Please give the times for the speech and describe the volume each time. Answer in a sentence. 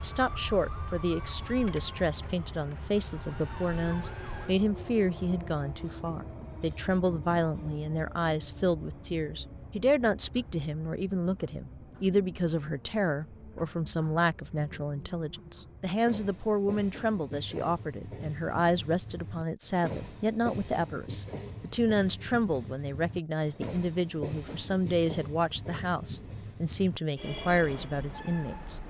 The speech can be heard from 0.0 to 28.8 s, at a steady volume.